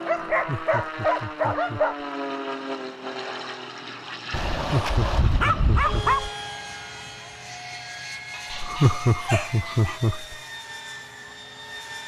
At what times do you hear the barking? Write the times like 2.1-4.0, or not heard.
0.1-1.9, 4.3-6.3, 8.3-10.0.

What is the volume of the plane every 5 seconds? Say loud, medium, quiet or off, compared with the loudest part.
loud, loud, medium.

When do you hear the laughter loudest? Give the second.
9 s.